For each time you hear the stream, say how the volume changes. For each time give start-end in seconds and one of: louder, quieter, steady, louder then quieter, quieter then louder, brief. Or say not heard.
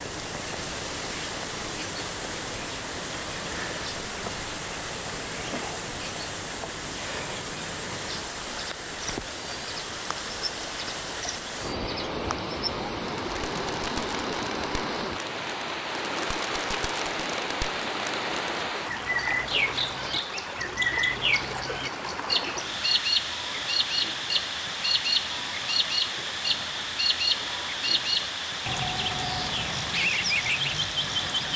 0.0-31.5 steady.